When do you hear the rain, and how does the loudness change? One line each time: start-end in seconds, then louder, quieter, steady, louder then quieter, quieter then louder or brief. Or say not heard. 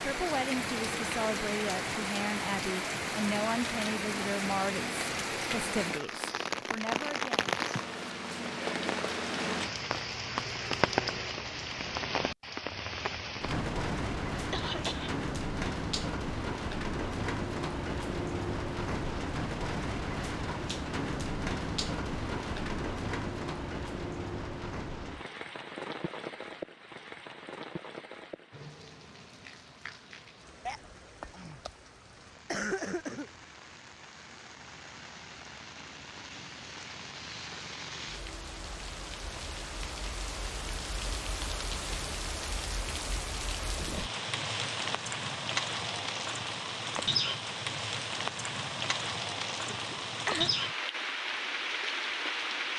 0.0-52.7 quieter then louder.